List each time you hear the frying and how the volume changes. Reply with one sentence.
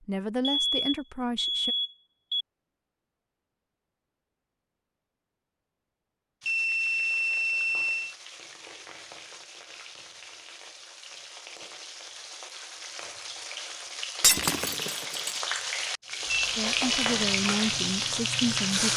You can hear the frying from 6.4 to 18.9 s, getting louder.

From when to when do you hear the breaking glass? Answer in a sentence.
You can hear the breaking glass from 14.2 to 15.4 s.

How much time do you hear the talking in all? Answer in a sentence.
You can hear the talking for 4 seconds altogether.